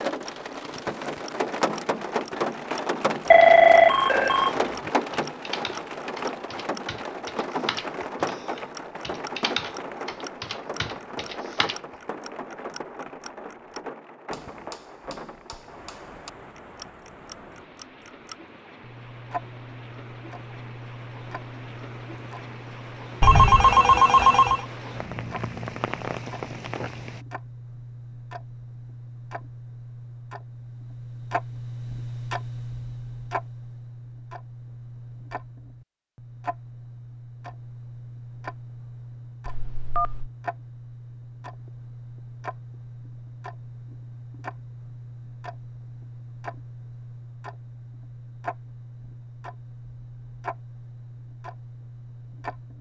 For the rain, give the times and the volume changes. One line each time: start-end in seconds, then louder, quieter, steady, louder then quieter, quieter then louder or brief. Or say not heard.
0.0-27.2 quieter then louder.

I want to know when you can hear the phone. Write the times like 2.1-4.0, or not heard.
3.3-4.9, 23.2-24.6, 39.5-40.3.